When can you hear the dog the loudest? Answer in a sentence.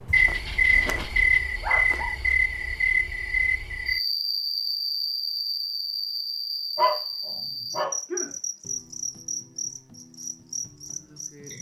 The loudest moment of the dog is at 7 seconds.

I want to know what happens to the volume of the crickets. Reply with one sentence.
The volume of the crickets goes down.